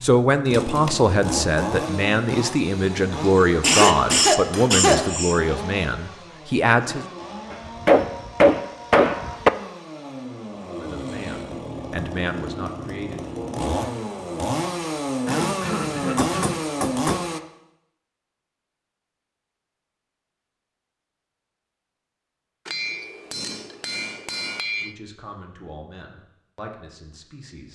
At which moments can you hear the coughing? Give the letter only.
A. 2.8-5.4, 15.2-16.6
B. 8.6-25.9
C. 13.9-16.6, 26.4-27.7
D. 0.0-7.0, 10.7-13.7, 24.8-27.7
A.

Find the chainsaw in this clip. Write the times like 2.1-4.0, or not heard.
0.0-17.4.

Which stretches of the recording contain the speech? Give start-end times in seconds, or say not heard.
0.0-7.0, 10.7-13.7, 24.8-27.7.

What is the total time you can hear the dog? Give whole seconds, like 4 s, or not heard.
not heard.